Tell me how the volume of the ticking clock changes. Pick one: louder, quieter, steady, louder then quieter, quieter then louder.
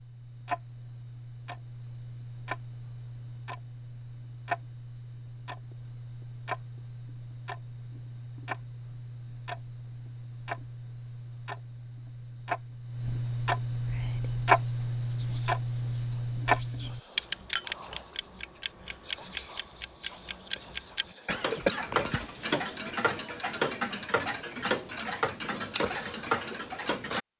louder.